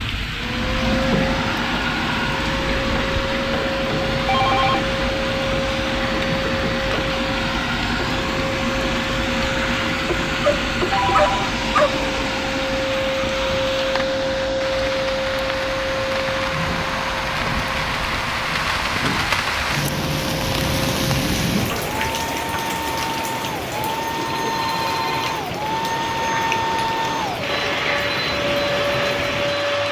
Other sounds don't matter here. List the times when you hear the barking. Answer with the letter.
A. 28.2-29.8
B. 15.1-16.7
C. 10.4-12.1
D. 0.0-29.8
C.